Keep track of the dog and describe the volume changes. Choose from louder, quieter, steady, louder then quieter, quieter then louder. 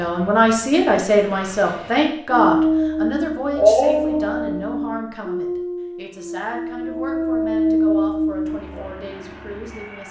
quieter then louder.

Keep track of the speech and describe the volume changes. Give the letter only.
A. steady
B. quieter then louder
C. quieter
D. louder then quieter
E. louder
C.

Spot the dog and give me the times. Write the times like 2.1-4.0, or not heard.
2.3-8.8.